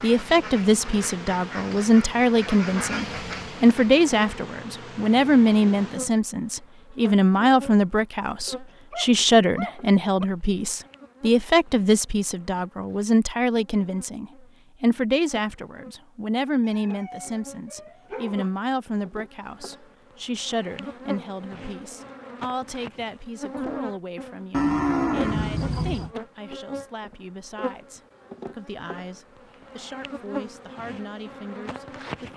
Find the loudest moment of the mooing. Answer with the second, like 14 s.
25 s.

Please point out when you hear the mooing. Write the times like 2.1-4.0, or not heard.
24.5-26.1.